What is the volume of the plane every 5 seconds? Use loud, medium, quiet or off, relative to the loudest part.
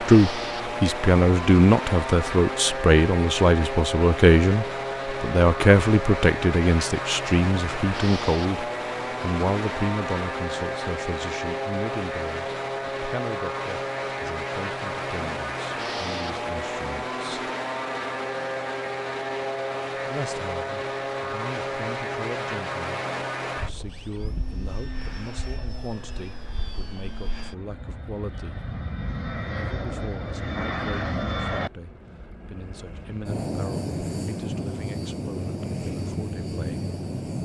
loud, loud, loud, loud, loud, medium, loud, loud.